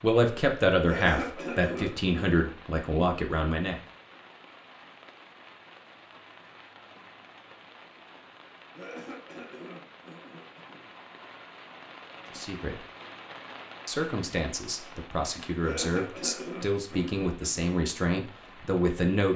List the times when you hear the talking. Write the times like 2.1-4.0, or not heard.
0.0-3.8, 12.3-12.8, 13.8-19.3.